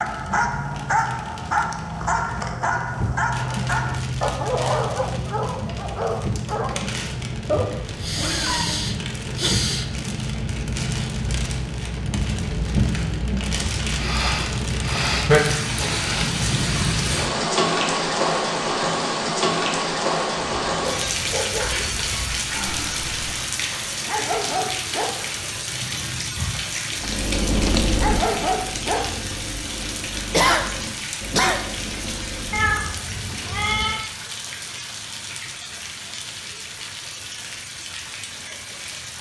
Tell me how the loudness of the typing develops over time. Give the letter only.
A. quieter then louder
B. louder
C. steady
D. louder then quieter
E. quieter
E.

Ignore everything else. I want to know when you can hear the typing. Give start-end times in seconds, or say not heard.
26.9-33.0.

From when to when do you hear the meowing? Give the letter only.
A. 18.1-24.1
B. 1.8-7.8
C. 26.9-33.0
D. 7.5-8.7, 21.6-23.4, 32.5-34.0
D.